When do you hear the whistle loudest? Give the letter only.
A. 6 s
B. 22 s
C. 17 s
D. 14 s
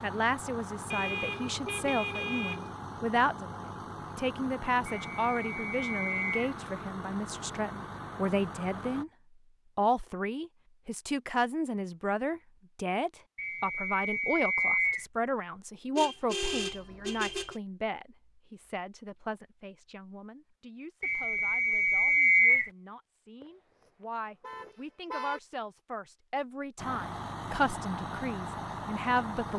B.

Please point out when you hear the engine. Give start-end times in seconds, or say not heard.
0.0-9.1, 26.8-29.5.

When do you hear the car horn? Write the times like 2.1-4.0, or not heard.
0.9-2.8, 15.9-17.6, 24.4-25.4.